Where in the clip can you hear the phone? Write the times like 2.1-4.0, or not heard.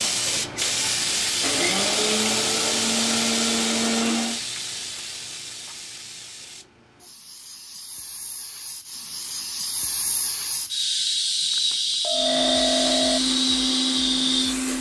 11.5-13.2.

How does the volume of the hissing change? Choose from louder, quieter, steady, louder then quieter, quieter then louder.
quieter then louder.